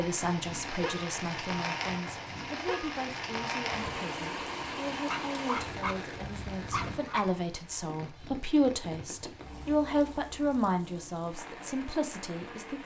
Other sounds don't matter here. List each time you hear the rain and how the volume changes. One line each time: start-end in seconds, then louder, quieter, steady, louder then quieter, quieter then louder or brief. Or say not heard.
0.0-12.8 quieter.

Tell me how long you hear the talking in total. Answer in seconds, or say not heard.
13 s.